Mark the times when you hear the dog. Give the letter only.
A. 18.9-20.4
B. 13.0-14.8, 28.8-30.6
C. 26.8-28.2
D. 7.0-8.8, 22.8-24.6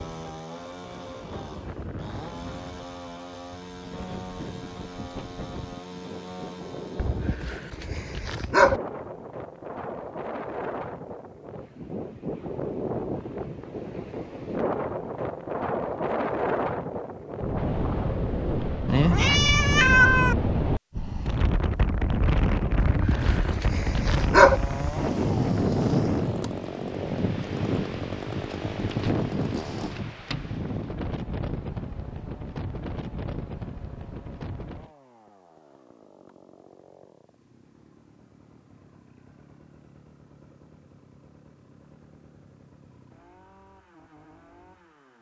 D.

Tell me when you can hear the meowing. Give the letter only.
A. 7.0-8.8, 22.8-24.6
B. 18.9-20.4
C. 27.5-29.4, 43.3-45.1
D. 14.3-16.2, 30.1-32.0
B.